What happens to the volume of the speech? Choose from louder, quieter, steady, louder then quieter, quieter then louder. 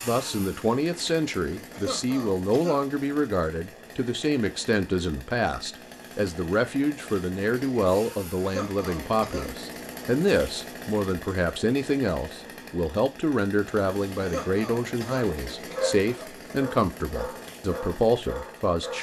steady.